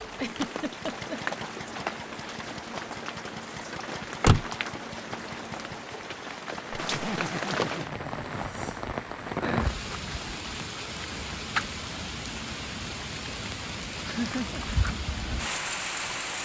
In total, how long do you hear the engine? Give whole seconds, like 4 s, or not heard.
7 s.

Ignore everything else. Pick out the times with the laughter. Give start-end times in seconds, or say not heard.
0.1-1.2, 6.8-8.7, 14.1-14.6.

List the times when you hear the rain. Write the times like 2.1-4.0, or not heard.
0.0-16.4.